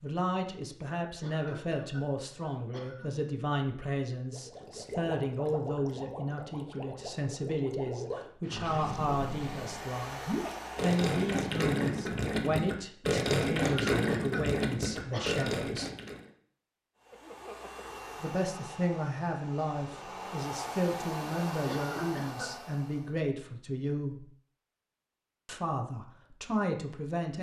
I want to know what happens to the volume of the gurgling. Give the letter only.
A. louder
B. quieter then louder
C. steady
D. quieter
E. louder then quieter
A.